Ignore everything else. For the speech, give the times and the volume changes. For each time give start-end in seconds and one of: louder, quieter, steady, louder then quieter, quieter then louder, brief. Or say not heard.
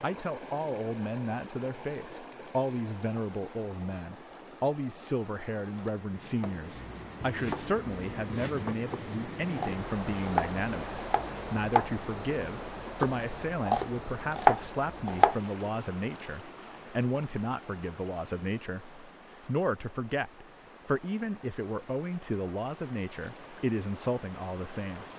0.0-25.1 steady.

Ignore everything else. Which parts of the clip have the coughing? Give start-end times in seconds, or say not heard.
not heard.